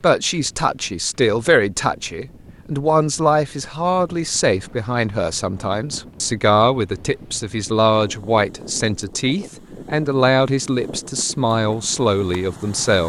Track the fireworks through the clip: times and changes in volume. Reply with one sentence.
You can't hear the fireworks here.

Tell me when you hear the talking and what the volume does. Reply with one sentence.
The talking can be heard from 0.0 to 13.0 s, at a steady volume.